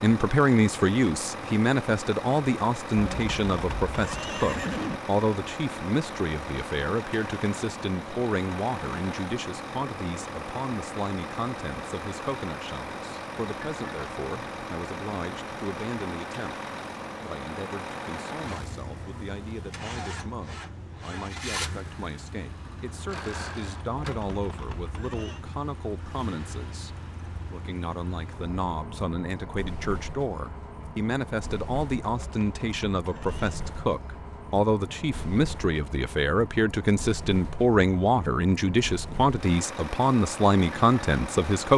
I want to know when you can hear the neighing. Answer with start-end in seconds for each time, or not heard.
3.0-5.0, 23.9-25.4, 32.0-33.5.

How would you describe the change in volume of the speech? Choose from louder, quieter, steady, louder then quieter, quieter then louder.
quieter then louder.